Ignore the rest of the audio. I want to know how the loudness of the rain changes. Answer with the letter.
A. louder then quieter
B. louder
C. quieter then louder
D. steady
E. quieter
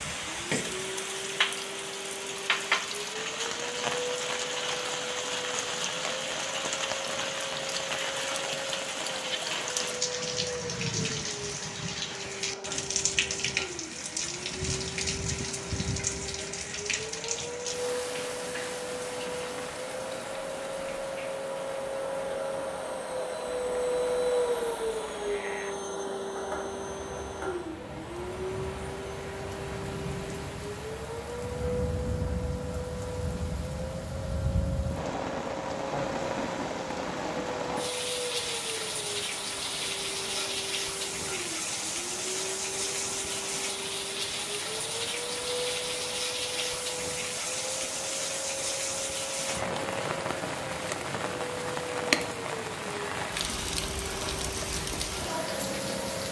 C.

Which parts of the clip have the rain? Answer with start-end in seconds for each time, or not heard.
0.0-56.2.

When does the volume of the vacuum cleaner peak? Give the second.
24 s.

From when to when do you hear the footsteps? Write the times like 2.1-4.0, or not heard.
not heard.